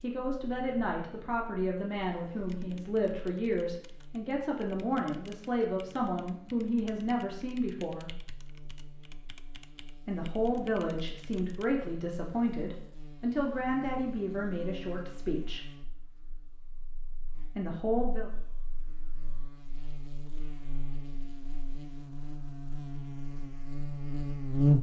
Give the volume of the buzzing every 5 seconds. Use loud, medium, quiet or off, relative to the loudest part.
quiet, quiet, quiet, quiet, loud.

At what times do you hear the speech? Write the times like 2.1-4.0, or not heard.
0.0-8.1, 10.1-15.7, 17.6-18.3.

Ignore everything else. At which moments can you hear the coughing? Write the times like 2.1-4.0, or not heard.
not heard.